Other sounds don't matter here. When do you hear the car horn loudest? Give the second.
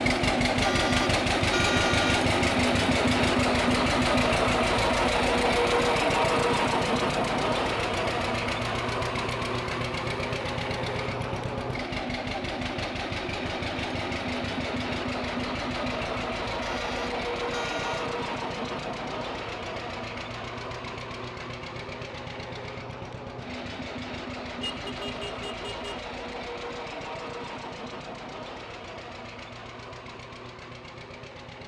2 s.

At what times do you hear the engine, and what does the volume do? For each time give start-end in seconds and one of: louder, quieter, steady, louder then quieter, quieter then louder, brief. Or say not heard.
0.0-31.6 quieter.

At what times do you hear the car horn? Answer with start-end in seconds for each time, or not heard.
0.6-2.2, 16.6-18.1, 24.6-26.1.